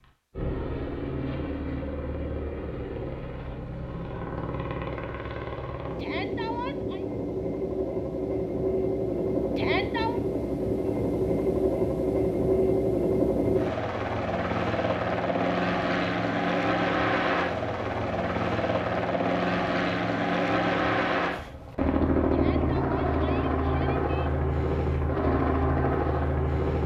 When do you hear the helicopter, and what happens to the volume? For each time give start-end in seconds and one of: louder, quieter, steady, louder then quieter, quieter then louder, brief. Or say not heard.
0.0-26.8 louder.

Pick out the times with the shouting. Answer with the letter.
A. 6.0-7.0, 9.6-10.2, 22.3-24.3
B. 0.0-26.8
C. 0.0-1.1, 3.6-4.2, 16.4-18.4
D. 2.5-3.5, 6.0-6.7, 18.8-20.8
A.